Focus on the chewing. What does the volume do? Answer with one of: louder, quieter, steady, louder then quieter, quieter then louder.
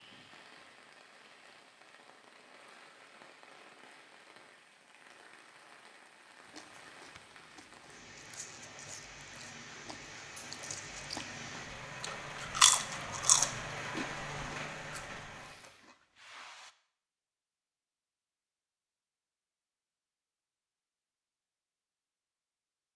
louder then quieter.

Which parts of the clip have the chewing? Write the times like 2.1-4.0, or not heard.
6.5-16.8.